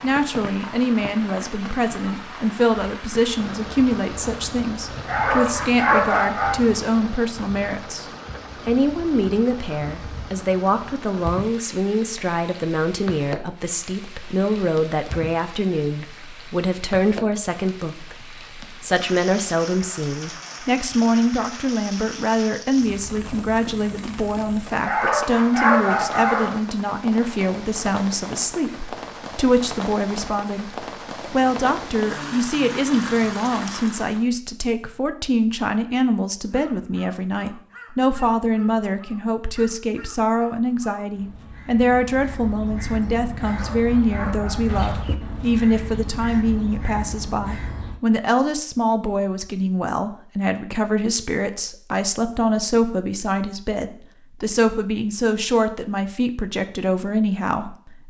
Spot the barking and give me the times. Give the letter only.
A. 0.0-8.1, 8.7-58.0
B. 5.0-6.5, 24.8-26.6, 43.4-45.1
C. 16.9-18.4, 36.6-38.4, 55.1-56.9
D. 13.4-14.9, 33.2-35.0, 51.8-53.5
B.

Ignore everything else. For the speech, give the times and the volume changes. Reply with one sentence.
You can hear the speech from 0.0 to 8.1 s, at a steady volume; and from 8.7 to 58.0 s, at a steady volume.